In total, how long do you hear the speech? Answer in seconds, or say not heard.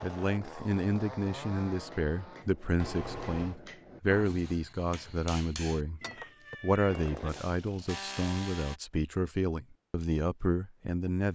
11 s.